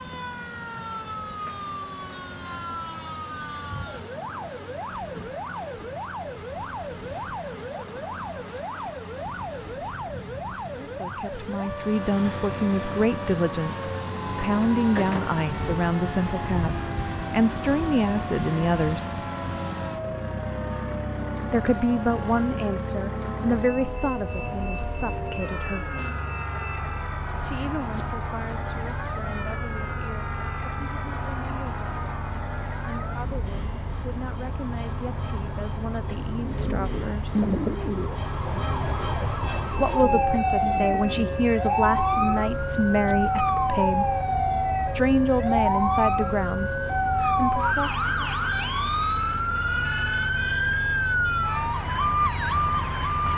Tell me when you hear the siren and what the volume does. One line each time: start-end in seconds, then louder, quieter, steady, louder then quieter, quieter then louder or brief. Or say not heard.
0.0-53.3 louder.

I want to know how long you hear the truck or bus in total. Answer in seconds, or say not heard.
53 s.